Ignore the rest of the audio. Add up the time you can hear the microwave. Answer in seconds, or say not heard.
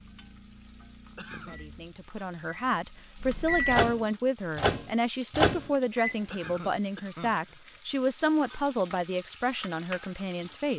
6 s.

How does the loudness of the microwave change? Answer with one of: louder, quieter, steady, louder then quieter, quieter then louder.
louder.